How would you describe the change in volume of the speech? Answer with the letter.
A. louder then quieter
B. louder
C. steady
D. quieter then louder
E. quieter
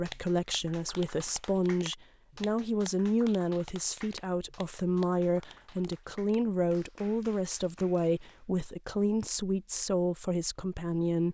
C.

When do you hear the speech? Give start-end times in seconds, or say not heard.
0.0-11.2.